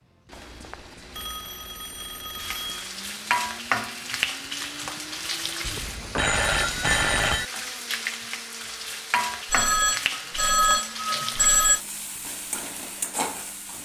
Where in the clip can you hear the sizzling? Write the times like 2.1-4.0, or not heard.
2.4-13.7.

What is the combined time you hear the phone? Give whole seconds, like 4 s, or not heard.
7 s.